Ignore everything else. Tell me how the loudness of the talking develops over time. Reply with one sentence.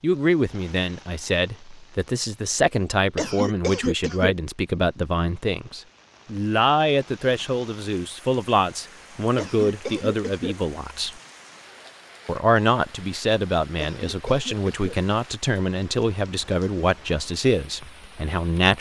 The volume of the talking stays about the same.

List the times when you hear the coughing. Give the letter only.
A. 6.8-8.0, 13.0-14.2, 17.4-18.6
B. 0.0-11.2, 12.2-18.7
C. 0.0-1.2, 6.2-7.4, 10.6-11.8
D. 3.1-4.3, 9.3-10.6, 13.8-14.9
D.